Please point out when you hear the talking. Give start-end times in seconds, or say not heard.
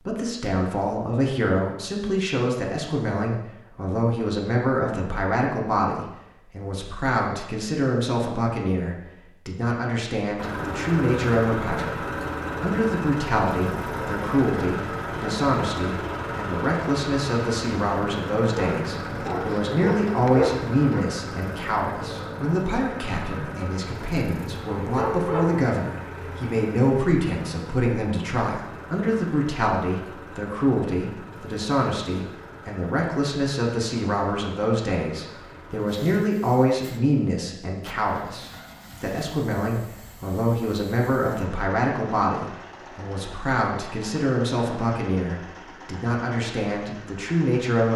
0.1-47.9.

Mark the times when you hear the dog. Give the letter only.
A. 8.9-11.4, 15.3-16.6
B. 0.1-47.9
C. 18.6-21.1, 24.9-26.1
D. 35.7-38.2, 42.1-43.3
C.